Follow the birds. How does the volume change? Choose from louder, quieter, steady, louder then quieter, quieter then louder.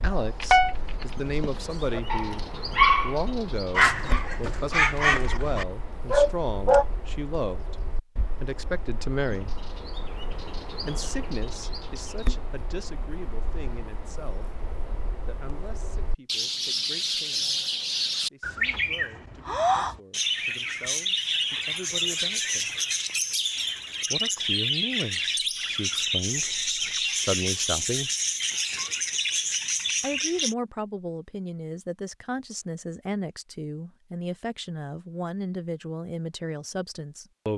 louder.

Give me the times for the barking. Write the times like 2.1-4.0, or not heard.
0.2-6.8.